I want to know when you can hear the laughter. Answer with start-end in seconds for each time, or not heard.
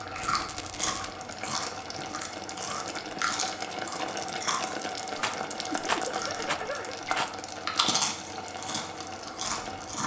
5.8-7.0.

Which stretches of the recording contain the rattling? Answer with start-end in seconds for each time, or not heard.
0.1-1.1, 5.2-7.3.